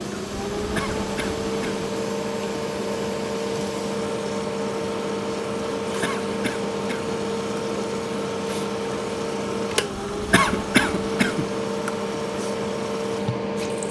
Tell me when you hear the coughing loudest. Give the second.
11 s.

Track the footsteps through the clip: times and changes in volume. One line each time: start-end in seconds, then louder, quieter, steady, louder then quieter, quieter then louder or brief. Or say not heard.
not heard.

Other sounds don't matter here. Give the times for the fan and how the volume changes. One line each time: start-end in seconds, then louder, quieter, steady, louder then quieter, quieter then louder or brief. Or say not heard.
0.0-13.8 steady.